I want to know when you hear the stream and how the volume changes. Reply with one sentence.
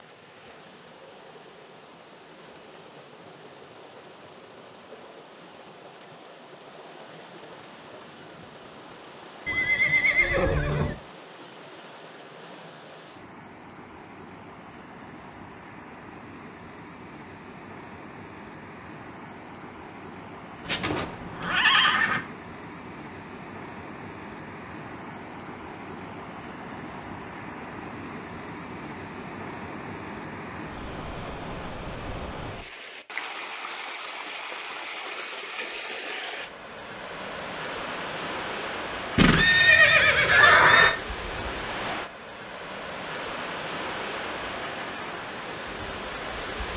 The stream can be heard from 0.0 to 46.7 s, getting louder.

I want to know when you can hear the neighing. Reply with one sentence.
You can hear the neighing from 9.4 to 10.9 s, from 20.6 to 22.2 s and from 39.1 to 41.0 s.